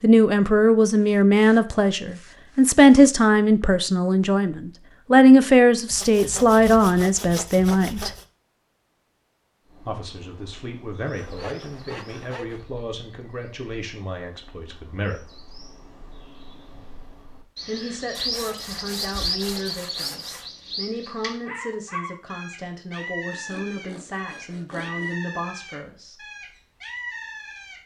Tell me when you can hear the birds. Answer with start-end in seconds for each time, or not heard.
9.6-27.8.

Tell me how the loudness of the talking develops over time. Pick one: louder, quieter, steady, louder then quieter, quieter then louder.
quieter.